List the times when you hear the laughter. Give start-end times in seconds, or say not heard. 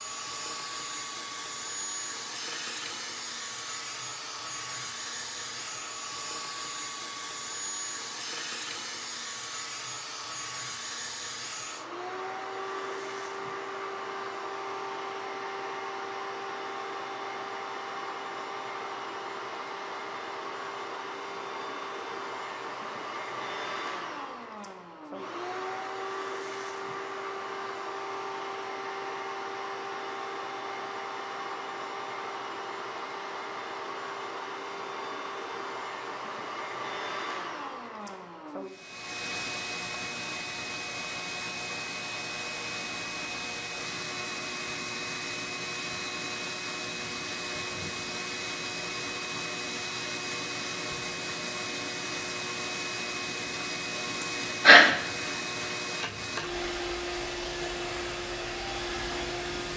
54.2-54.9.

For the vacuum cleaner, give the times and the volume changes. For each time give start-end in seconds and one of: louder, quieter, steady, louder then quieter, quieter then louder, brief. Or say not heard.
0.0-59.7 steady.